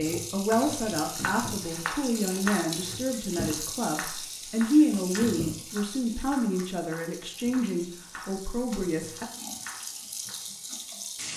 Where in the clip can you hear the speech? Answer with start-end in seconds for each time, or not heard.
0.0-9.2.